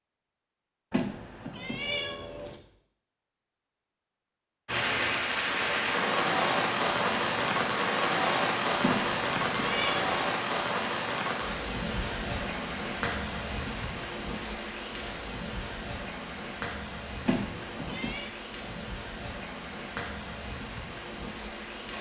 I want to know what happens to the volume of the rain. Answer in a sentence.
The volume of the rain goes down.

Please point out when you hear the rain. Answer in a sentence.
The rain can be heard from 4.7 to 21.9 s.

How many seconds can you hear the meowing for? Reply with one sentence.
The meowing can be heard for 4 seconds in total.